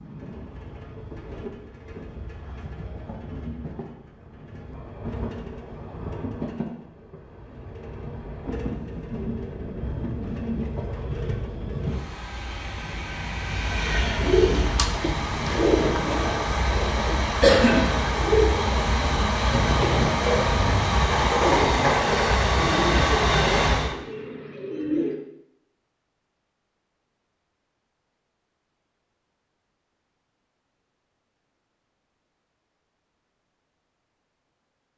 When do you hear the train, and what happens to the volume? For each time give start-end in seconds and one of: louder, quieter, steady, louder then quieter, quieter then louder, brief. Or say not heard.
0.0-23.9 louder.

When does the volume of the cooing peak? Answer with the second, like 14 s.
18 s.